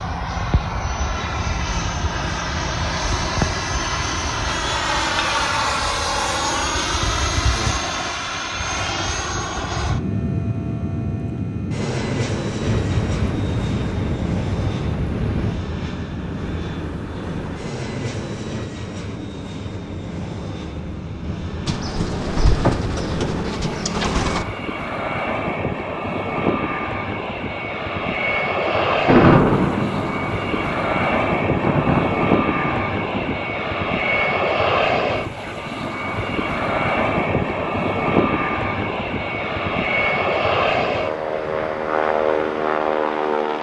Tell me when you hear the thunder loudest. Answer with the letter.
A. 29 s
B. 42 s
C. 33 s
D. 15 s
A.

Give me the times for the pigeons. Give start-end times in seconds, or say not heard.
21.6-24.4.